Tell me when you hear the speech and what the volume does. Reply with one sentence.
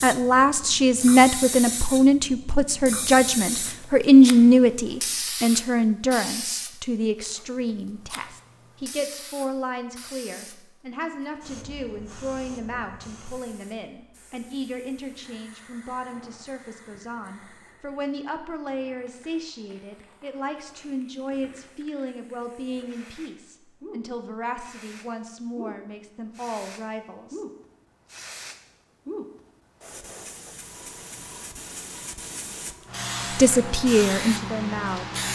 You can hear the speech from 0.0 to 27.4 s, getting quieter; and briefly from 33.4 to 35.1 s.